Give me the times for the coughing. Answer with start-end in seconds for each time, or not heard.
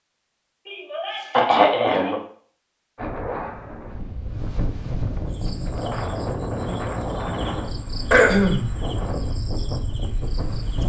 0.7-2.1, 8.1-8.7.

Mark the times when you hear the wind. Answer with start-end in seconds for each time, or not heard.
3.0-10.8.